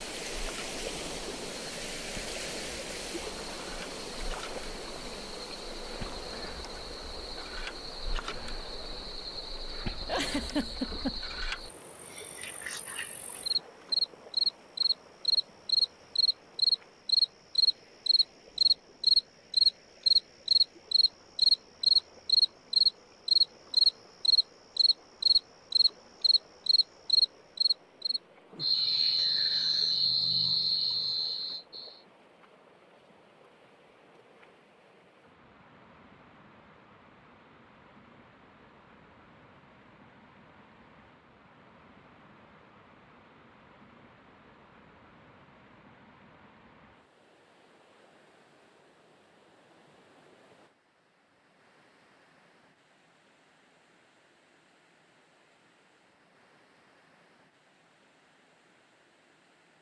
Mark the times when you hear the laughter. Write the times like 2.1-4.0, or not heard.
10.1-11.2.